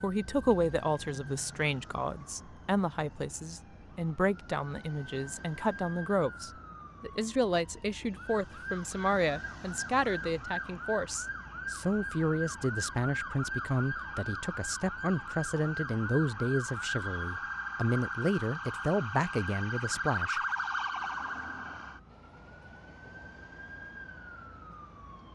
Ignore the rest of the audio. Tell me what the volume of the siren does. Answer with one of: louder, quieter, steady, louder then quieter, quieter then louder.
louder.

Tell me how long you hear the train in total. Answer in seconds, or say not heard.
3 s.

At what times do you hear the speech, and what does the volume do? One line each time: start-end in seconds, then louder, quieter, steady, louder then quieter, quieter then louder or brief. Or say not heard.
0.0-20.4 steady.